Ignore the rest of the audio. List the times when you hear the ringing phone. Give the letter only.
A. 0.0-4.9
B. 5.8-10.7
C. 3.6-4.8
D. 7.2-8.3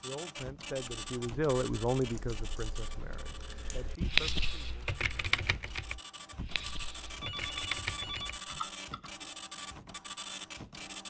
D.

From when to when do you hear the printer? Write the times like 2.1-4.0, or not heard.
0.0-11.0.